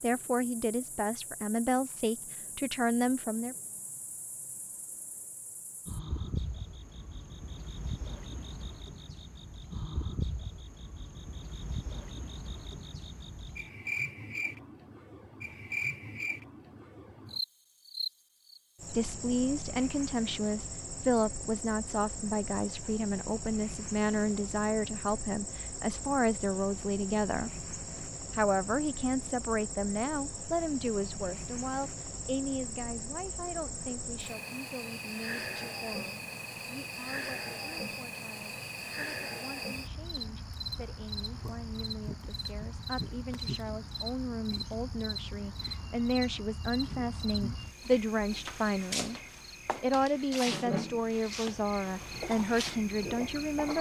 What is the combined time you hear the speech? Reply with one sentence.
The speech can be heard for 37 seconds in total.